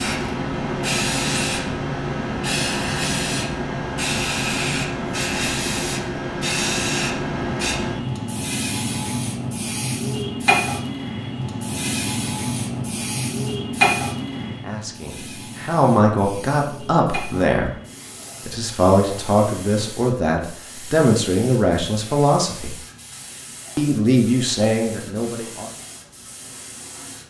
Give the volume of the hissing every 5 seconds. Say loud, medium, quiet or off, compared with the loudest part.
loud, loud, loud, quiet, quiet, quiet.